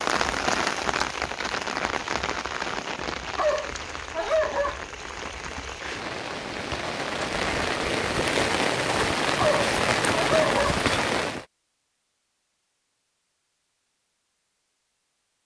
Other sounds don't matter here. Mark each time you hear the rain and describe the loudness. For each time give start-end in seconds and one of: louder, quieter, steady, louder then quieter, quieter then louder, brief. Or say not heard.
0.0-11.4 quieter then louder.